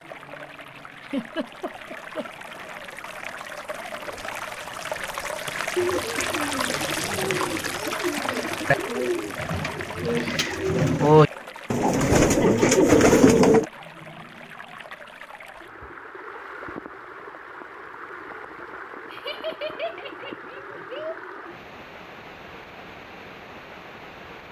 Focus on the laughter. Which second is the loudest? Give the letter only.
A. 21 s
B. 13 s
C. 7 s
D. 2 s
B.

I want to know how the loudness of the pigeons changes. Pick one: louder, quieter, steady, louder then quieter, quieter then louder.
louder.